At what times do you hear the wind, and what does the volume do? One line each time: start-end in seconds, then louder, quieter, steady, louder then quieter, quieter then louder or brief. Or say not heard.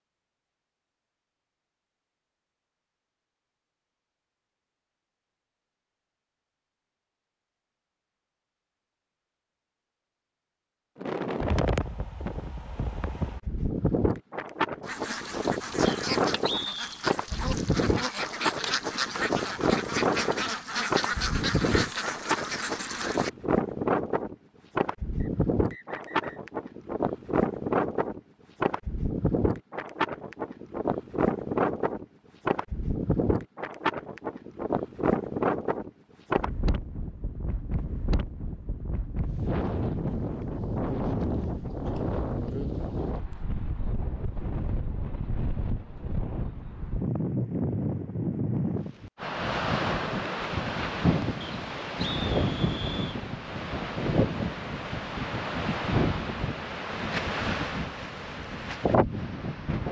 11.0-59.8 steady.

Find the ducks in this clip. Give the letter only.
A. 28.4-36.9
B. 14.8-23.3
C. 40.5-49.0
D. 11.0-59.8
B.